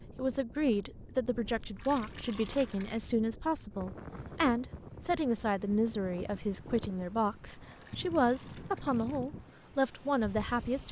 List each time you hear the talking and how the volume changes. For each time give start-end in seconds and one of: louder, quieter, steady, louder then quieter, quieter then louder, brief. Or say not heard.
0.1-10.8 steady.